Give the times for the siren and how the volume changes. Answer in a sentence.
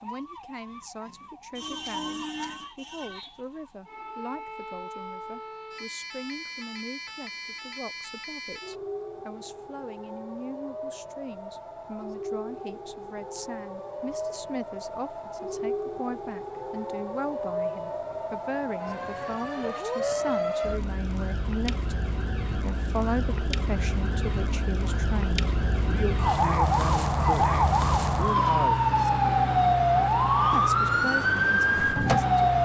The siren can be heard from 0.0 to 32.6 s, getting louder.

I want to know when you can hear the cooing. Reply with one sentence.
The cooing can't be heard in this clip.